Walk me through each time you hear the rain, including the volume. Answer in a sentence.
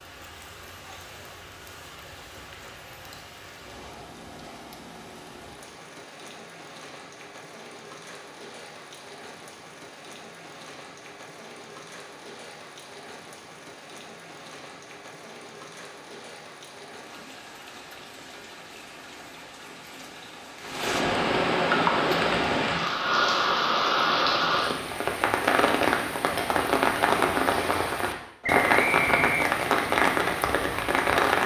You can hear the rain from 0.0 to 31.4 s, getting louder.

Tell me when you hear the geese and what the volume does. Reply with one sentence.
You can't hear the geese here.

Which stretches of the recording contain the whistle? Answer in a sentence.
You can hear the whistle from 28.4 to 29.5 s.